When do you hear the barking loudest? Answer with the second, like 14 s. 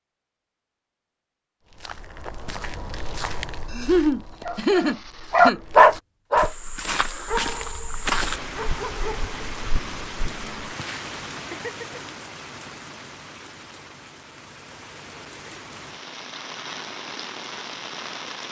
6 s.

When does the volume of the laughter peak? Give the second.
4 s.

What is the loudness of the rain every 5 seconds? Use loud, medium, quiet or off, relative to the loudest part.
off, loud, loud, loud.